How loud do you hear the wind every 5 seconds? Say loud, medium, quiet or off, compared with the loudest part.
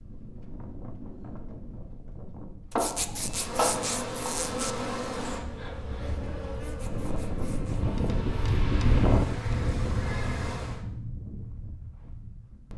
quiet, loud, medium.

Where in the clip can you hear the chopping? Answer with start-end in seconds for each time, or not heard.
2.8-4.4.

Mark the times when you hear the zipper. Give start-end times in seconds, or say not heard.
2.7-4.8, 6.5-7.8.